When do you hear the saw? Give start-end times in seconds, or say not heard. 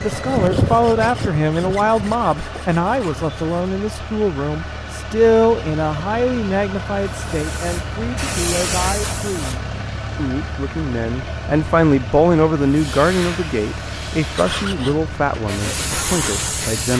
0.0-3.5, 14.3-16.9.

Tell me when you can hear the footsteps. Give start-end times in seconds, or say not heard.
not heard.